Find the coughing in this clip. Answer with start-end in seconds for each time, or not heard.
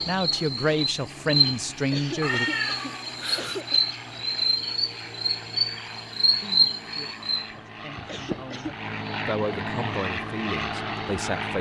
1.9-3.9, 8.1-8.8.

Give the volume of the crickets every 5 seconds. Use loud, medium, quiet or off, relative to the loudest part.
loud, loud, off.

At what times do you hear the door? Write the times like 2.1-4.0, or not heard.
not heard.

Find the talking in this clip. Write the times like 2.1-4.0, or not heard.
0.1-2.5, 6.3-11.5.